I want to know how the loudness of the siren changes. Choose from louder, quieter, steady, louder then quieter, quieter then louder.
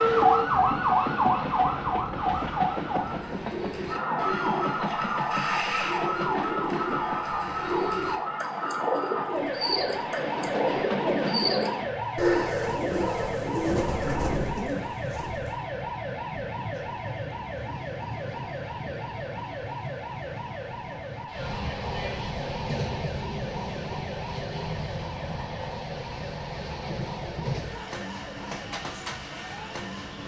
quieter.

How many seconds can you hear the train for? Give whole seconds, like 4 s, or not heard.
30 s.